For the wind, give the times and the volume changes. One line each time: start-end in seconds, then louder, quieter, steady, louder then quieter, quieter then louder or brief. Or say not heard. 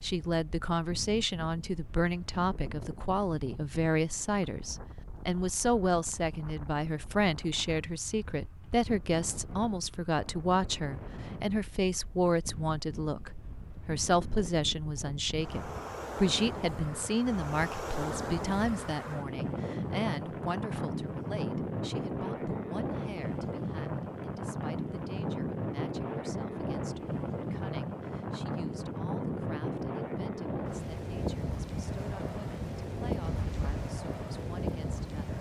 0.0-35.3 louder.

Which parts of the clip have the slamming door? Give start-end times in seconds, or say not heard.
33.2-33.9.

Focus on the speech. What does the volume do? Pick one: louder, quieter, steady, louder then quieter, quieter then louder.
quieter.